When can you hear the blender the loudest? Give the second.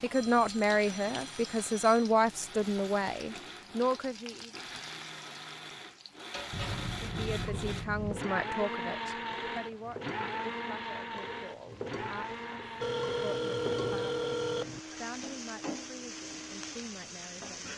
9 s.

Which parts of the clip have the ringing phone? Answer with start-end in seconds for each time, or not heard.
0.1-2.1, 6.5-8.2, 12.8-14.8.